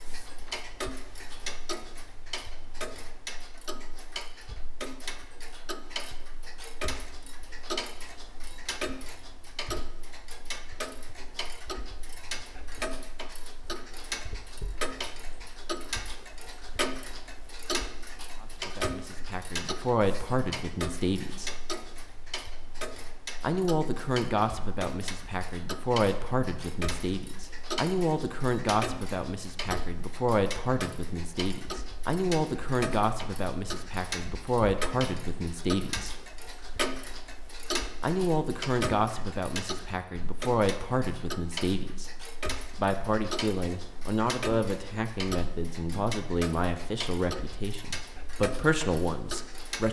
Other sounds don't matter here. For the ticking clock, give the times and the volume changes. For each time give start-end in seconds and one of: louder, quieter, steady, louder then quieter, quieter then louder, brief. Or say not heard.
0.0-49.8 steady.